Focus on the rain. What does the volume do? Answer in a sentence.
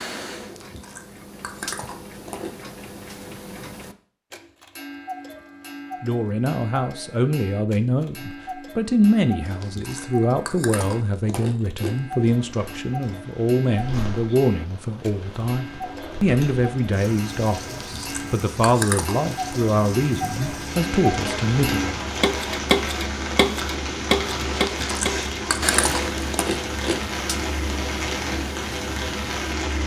The loudness of the rain goes up.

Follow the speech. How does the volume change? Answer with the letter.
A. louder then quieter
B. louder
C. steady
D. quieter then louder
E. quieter
C.